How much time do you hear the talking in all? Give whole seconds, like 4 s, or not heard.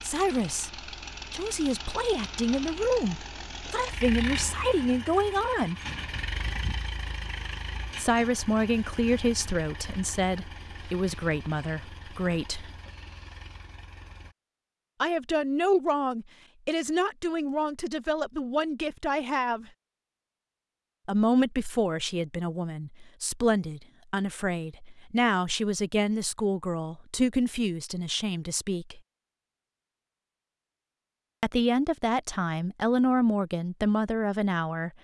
27 s.